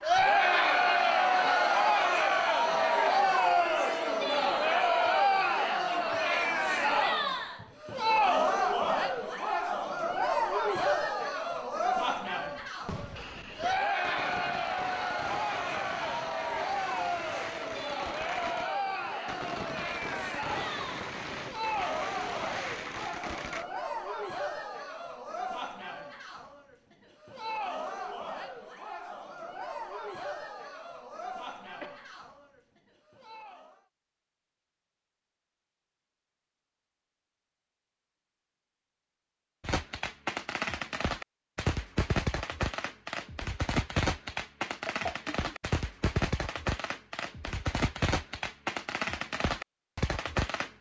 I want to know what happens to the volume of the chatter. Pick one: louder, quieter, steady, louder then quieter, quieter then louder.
quieter.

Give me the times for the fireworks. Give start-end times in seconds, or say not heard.
12.7-23.6, 39.6-50.7.